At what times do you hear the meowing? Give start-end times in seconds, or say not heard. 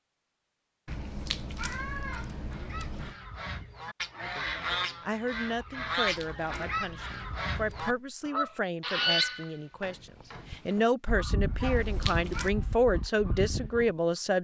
0.8-3.2, 6.0-8.0, 11.6-12.5.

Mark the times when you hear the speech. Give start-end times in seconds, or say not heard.
4.8-14.3.